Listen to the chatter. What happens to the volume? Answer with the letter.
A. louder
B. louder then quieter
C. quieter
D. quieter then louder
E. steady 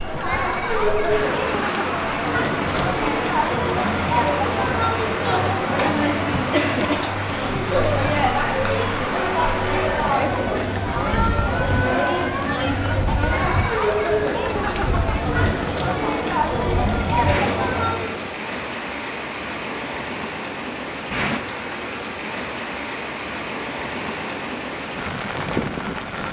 E.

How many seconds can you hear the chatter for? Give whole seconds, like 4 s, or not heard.
18 s.